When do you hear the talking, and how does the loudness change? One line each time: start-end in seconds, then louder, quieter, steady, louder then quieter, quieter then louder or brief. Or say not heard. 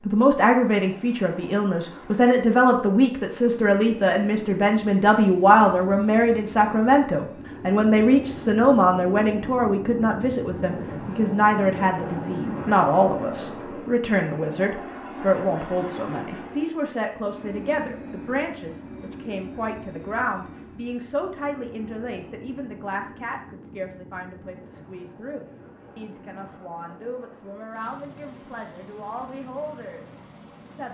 0.1-30.9 quieter.